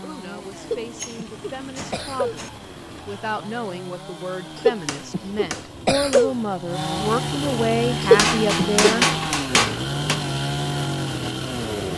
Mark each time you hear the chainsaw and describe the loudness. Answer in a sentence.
The chainsaw can be heard from 0.0 to 11.9 s, getting louder.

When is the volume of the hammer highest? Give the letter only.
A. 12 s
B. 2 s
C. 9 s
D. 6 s
C.